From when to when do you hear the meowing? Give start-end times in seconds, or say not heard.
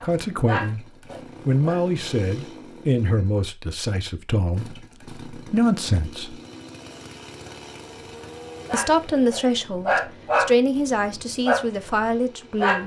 not heard.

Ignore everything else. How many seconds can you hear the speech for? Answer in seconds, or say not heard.
10 s.